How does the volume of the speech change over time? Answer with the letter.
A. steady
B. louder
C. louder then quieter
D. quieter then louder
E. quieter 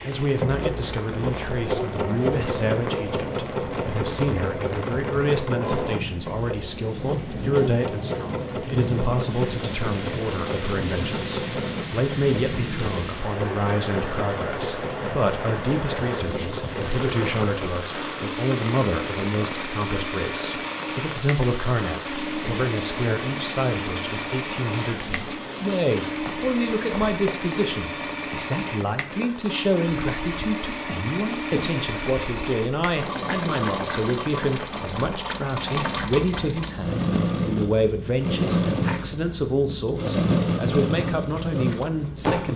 A.